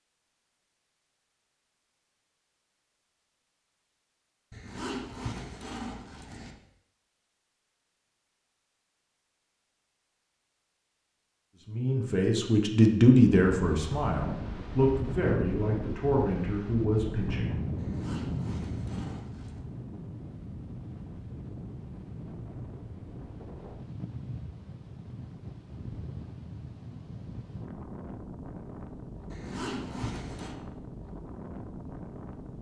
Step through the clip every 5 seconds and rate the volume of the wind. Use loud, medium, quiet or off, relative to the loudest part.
off, off, loud, loud, medium, medium, medium.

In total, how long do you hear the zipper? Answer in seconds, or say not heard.
5 s.